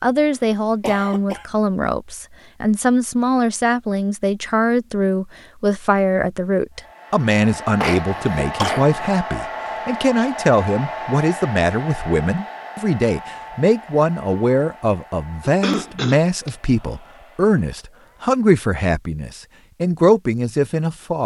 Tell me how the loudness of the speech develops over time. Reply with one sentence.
The loudness of the speech stays about the same.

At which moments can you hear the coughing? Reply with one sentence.
The coughing can be heard from 0.8 to 1.4 s, from 7.5 to 9.0 s and from 15.4 to 16.5 s.